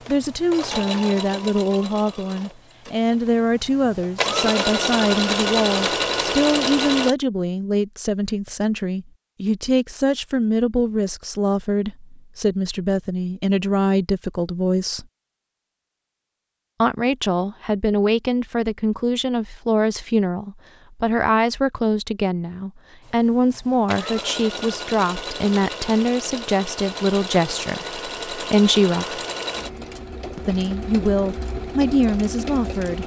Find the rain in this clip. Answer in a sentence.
The rain can't be heard in this clip.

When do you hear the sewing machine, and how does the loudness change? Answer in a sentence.
You can hear the sewing machine from 0.0 to 7.2 s, getting quieter then louder; and from 23.0 to 33.0 s, at a steady volume.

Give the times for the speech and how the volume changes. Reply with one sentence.
The speech can be heard from 0.1 to 15.1 s, at a steady volume; from 16.8 to 29.2 s, at a steady volume; and briefly from 30.4 to 33.0 s.